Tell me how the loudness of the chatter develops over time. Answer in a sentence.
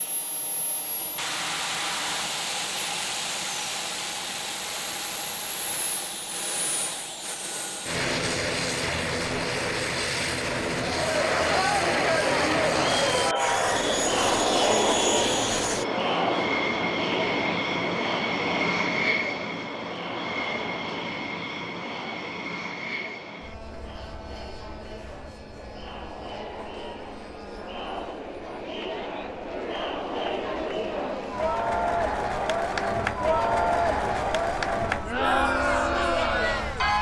The loudness of the chatter goes down, then up.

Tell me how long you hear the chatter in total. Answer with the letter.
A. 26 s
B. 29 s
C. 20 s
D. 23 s
A.